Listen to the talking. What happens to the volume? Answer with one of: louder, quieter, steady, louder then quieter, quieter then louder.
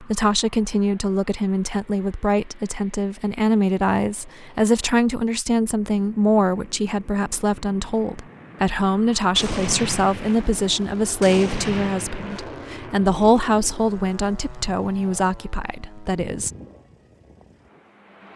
steady.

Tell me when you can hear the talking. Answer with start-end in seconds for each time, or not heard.
0.0-16.5.